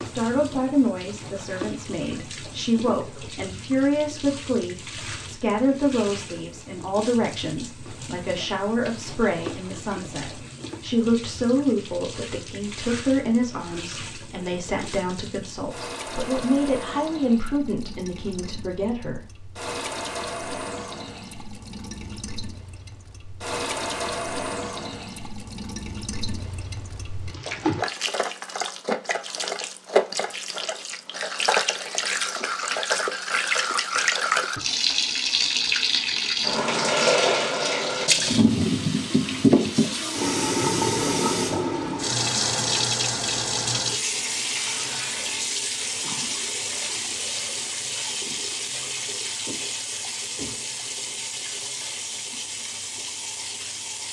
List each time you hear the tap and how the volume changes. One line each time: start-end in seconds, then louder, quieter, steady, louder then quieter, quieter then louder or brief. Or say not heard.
0.0-54.0 louder then quieter.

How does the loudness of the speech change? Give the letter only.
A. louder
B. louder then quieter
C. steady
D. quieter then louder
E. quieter
C.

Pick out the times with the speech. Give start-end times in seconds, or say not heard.
0.1-19.2.